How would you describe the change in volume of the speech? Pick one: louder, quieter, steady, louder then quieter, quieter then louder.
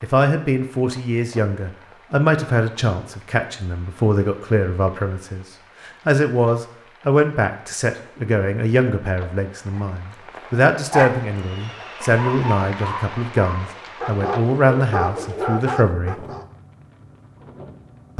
steady.